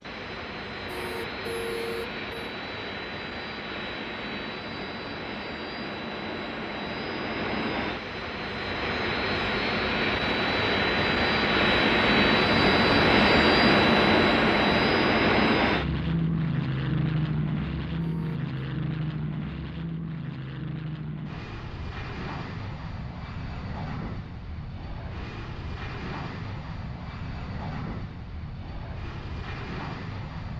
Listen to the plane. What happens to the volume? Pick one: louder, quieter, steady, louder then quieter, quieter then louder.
louder then quieter.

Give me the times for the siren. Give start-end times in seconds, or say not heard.
not heard.